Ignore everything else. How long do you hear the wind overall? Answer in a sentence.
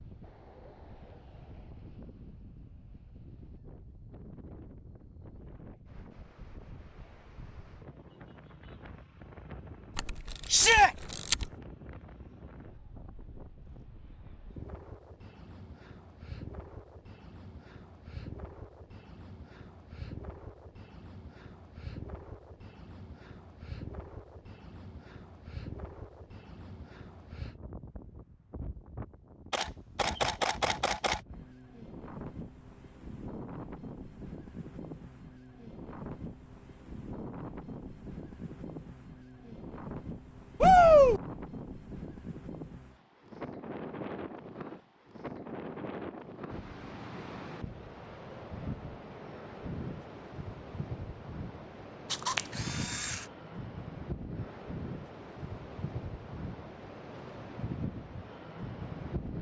The wind can be heard for 59 seconds in total.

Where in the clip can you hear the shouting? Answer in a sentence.
You can hear the shouting from 10.5 to 10.9 s and from 40.6 to 41.2 s.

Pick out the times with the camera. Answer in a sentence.
You can hear the camera from 9.9 to 11.4 s, from 29.5 to 31.2 s and from 52.1 to 53.2 s.